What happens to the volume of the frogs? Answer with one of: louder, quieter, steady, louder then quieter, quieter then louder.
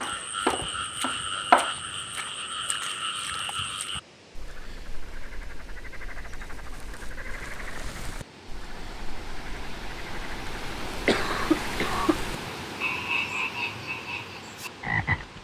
quieter then louder.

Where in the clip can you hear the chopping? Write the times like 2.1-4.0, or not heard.
0.0-1.8.